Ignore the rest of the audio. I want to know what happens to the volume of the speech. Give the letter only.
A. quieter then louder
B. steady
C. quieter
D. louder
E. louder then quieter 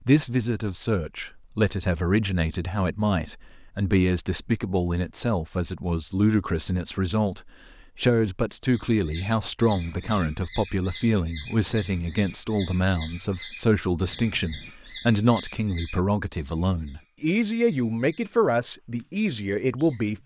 B.